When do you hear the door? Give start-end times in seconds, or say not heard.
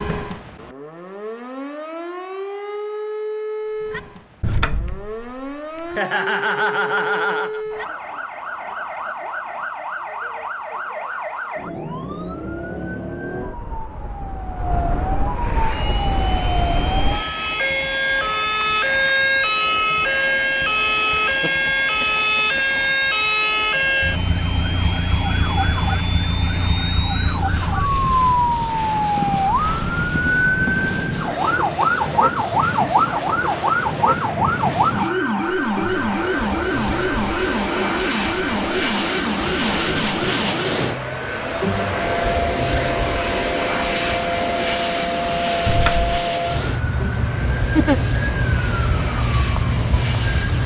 4.4-6.0, 45.6-46.1.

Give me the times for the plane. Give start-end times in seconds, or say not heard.
15.3-50.6.